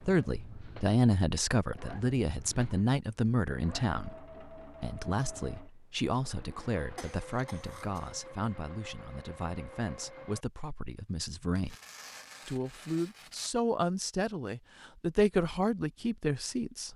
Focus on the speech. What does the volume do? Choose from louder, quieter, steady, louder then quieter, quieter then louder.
quieter then louder.